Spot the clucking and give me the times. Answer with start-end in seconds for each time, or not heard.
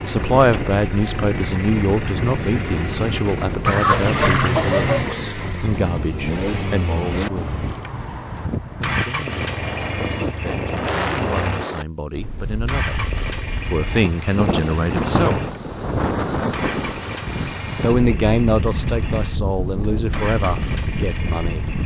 3.6-5.2.